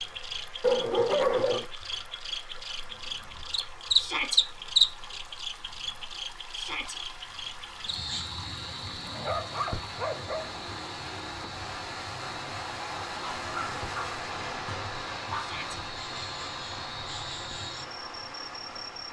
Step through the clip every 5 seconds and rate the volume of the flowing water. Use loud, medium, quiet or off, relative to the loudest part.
medium, medium, loud, loud.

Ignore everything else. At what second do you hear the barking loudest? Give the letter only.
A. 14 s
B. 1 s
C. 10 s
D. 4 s
B.